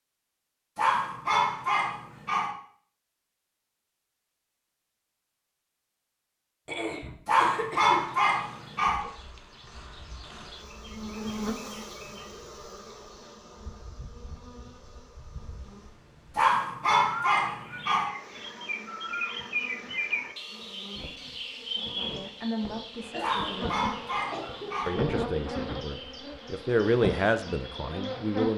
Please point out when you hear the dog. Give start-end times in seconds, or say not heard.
0.8-2.5, 7.2-9.1, 16.4-18.1, 23.2-24.9.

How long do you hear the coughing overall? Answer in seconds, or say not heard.
3 s.